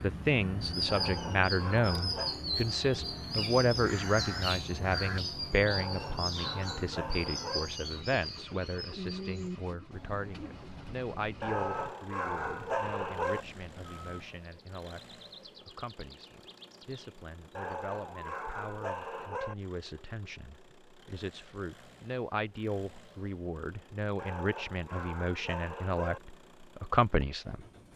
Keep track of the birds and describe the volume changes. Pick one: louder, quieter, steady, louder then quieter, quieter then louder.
quieter.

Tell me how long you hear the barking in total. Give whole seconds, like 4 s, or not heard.
10 s.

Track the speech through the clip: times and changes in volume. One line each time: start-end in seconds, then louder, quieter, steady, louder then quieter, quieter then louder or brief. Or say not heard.
0.0-27.6 quieter then louder.